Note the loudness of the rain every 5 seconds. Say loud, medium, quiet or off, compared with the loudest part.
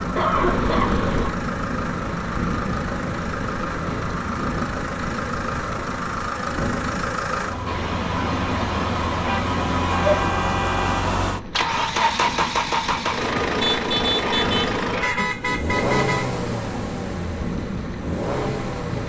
loud, loud, medium, loud.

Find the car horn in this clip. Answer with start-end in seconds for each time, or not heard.
0.3-1.4, 9.2-11.2, 13.6-16.2.